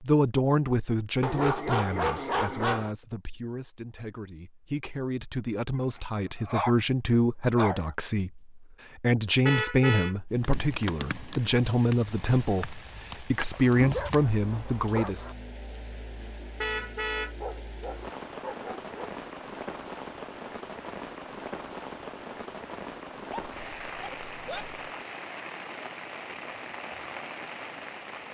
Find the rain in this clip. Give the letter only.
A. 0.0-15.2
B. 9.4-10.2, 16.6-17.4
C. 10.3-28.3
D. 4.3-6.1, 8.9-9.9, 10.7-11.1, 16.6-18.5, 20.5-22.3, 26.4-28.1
C.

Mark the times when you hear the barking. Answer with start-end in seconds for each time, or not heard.
1.2-3.0, 5.8-6.8, 7.5-8.0, 13.5-15.3, 17.4-19.1, 23.3-24.9.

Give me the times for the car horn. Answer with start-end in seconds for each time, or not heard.
9.4-10.2, 16.6-17.4.